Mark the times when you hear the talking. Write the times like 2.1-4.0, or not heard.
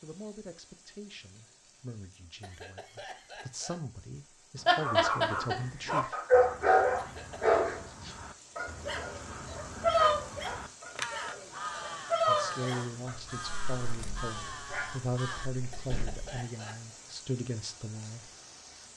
0.0-6.2, 12.2-18.3.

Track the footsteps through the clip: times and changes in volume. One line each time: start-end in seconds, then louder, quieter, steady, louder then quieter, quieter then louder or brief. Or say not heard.
not heard.